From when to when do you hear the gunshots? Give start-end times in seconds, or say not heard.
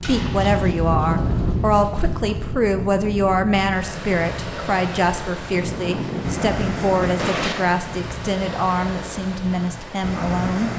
5.5-7.5.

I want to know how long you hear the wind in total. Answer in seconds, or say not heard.
11 s.